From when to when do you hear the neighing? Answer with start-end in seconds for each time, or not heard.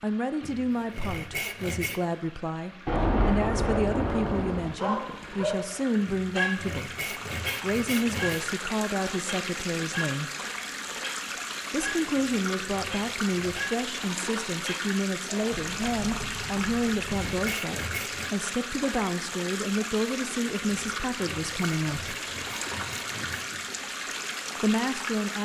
not heard.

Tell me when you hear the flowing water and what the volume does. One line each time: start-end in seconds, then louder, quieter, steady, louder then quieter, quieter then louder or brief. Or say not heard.
0.0-25.4 louder.